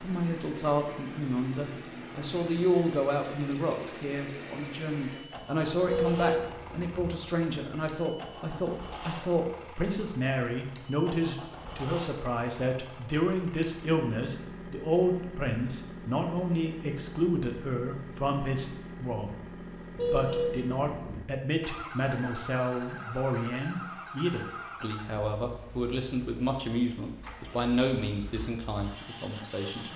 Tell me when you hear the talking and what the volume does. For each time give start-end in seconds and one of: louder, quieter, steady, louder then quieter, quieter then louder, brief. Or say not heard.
0.0-19.4 steady
20.1-29.9 steady.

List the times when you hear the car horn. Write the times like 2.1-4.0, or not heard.
5.8-7.2, 19.9-21.2.